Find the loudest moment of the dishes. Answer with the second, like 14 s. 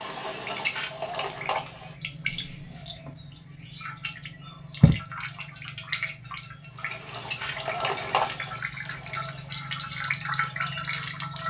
8 s.